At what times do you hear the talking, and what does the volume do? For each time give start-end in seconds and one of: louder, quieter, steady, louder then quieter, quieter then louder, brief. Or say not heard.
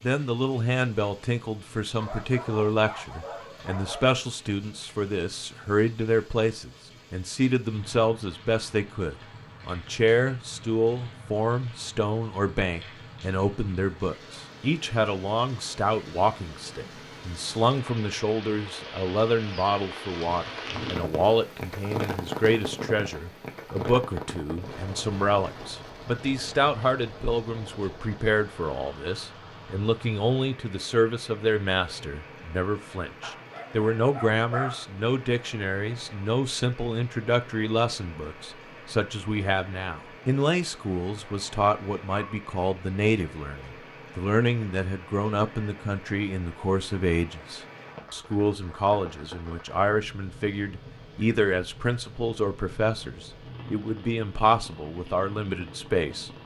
0.0-56.3 steady.